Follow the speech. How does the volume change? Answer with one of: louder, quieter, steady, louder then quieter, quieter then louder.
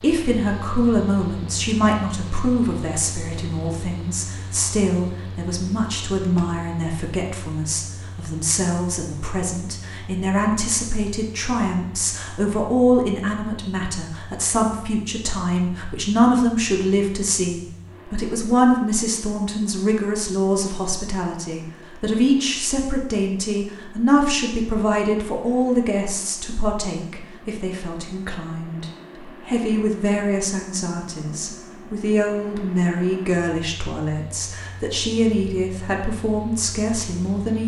steady.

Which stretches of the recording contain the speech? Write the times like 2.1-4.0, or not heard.
0.0-37.6.